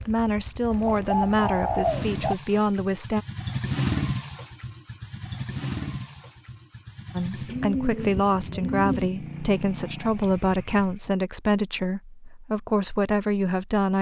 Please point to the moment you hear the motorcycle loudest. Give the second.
4 s.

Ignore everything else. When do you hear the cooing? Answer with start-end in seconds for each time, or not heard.
0.7-2.4, 7.5-9.1.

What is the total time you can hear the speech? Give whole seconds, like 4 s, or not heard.
10 s.